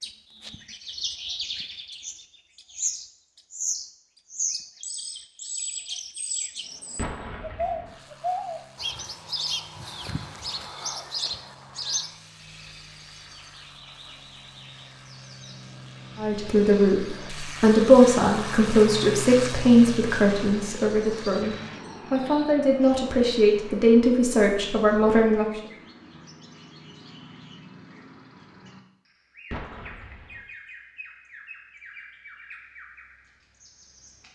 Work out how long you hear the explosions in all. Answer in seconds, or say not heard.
2 s.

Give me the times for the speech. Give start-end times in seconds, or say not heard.
16.1-25.4.